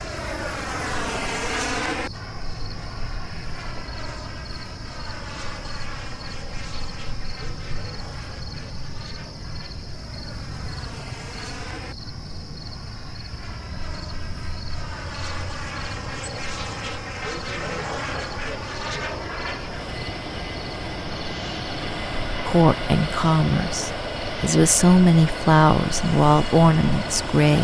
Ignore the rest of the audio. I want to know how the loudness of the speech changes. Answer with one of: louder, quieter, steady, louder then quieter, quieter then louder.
quieter then louder.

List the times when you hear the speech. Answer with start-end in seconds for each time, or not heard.
22.4-27.5.